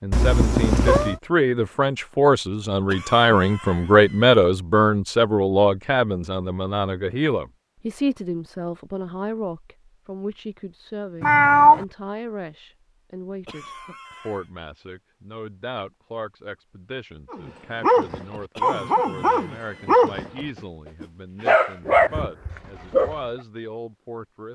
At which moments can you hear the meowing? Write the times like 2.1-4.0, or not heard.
0.1-1.1, 11.2-11.8, 21.8-22.6.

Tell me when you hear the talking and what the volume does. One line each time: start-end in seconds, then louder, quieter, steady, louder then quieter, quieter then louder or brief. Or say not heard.
0.0-24.4 quieter.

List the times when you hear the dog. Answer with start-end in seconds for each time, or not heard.
17.3-23.1.